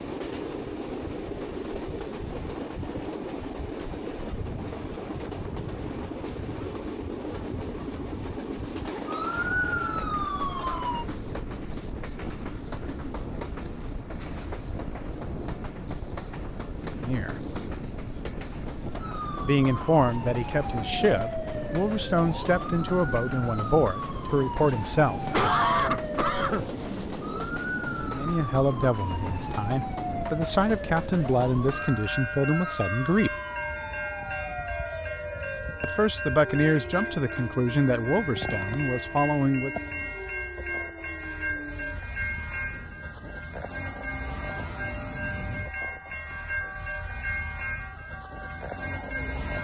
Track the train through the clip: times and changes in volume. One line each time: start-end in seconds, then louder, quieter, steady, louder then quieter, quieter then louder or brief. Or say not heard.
0.0-49.5 steady.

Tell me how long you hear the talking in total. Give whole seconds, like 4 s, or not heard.
16 s.